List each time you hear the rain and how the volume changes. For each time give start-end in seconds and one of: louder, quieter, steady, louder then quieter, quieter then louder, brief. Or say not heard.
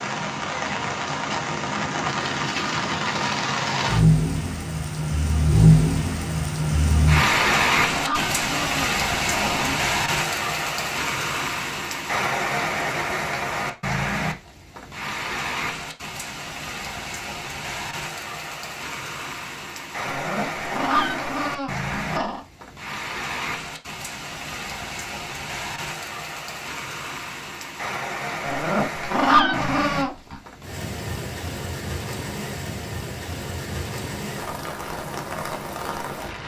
0.0-36.4 quieter.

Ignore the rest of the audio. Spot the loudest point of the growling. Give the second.
29 s.